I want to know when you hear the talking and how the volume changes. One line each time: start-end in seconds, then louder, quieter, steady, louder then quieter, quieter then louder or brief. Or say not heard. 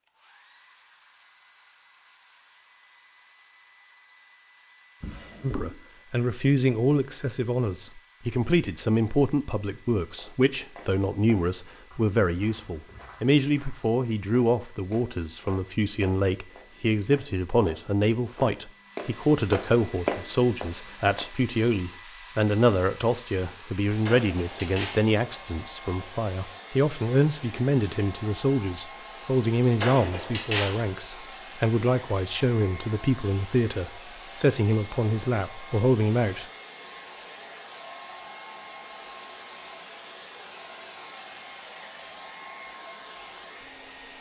5.4-36.5 steady.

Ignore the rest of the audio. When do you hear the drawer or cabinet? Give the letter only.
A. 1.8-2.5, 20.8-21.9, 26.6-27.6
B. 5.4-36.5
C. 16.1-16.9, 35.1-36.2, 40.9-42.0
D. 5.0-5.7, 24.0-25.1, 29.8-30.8
D.